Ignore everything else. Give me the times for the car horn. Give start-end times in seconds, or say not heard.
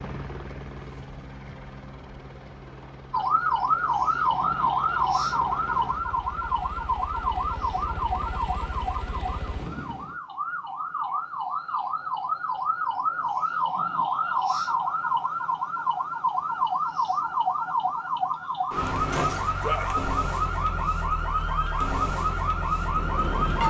not heard.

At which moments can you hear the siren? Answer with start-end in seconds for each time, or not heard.
3.1-23.6.